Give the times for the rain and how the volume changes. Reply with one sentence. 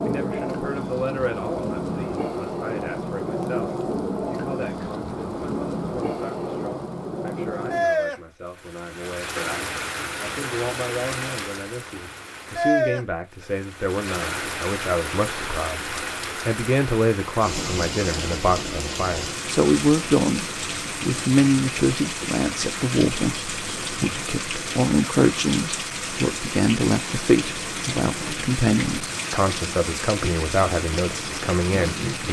You can hear the rain from 0.0 to 32.2 s, at a steady volume.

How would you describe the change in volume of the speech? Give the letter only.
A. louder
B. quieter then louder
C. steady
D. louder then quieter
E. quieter
A.